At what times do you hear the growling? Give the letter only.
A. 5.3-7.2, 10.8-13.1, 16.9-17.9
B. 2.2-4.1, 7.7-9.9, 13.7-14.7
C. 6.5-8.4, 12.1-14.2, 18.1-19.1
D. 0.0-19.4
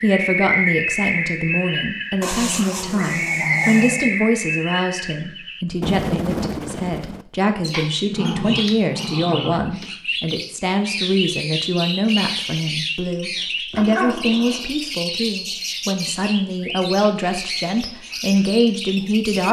B.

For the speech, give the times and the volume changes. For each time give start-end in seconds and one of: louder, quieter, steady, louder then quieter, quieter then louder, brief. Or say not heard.
0.0-19.4 steady.